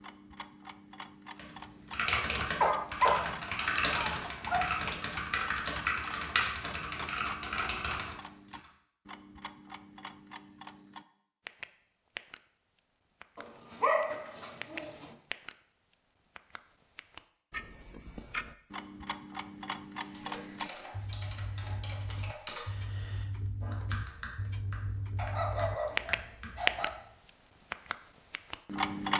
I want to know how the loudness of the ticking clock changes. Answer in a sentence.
The loudness of the ticking clock goes up.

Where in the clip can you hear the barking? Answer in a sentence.
You can hear the barking from 2.6 to 4.6 s, from 13.3 to 15.2 s and from 25.1 to 26.9 s.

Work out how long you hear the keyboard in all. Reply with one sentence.
The keyboard can be heard for 14 seconds in total.